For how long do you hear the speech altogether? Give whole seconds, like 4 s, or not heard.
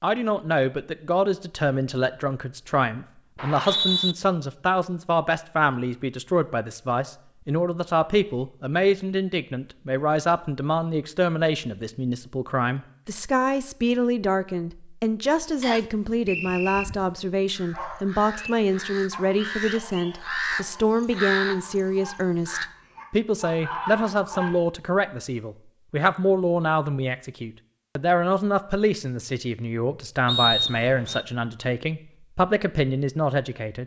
34 s.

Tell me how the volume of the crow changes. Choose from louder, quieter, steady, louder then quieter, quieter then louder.
louder.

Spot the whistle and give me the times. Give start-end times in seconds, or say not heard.
3.4-4.2, 15.6-16.9, 30.2-31.2.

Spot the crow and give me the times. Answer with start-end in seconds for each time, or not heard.
16.3-22.7.